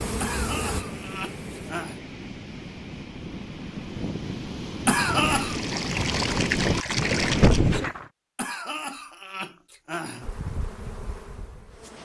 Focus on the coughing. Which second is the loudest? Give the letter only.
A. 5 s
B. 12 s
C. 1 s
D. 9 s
A.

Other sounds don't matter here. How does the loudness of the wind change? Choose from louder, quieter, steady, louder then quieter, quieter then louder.
louder.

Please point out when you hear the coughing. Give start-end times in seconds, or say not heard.
0.2-2.0, 4.8-5.5, 8.3-10.3.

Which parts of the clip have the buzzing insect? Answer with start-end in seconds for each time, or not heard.
0.0-1.8, 10.2-12.0.